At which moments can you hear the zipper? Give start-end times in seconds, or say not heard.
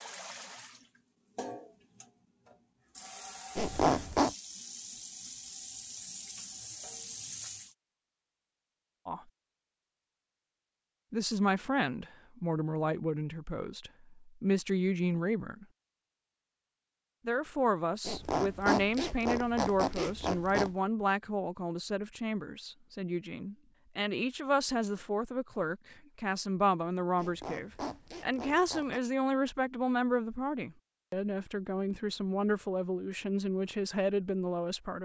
3.5-4.3, 18.1-20.7, 27.1-29.0.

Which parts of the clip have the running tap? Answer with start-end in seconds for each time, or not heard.
0.0-7.8.